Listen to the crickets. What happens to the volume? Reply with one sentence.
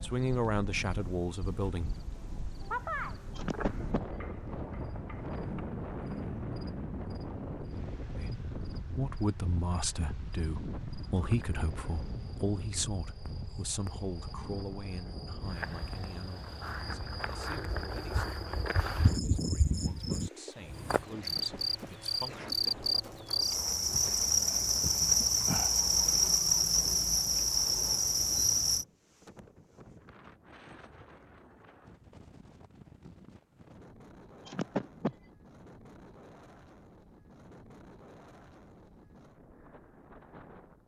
The loudness of the crickets goes down, then up.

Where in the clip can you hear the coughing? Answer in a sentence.
The coughing can be heard from 3.4 to 4.0 s, from 21.3 to 23.4 s and from 34.5 to 35.1 s.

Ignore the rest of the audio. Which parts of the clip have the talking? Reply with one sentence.
You can hear the talking from 0.0 to 1.9 s and from 8.2 to 22.5 s.